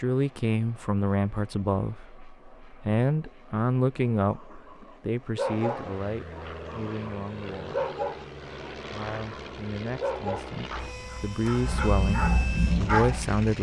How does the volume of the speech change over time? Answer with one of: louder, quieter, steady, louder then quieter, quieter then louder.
quieter then louder.